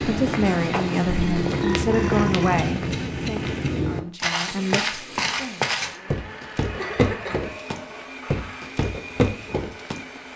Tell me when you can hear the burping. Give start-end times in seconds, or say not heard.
1.1-2.6, 6.7-8.7.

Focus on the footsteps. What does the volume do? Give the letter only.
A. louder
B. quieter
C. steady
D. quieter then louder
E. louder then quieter
C.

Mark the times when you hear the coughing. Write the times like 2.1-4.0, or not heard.
2.5-3.7, 6.8-8.1.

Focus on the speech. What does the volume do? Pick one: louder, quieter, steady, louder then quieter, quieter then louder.
quieter then louder.